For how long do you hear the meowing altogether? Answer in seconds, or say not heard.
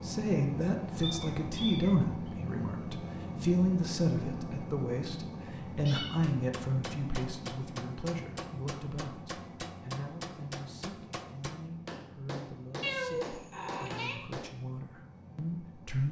3 s.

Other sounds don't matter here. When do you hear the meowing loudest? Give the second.
13 s.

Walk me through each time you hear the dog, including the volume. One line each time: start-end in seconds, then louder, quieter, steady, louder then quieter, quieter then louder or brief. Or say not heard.
not heard.